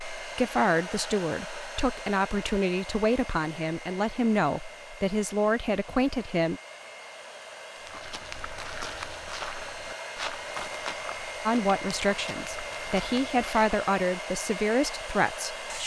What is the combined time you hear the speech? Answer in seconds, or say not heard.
11 s.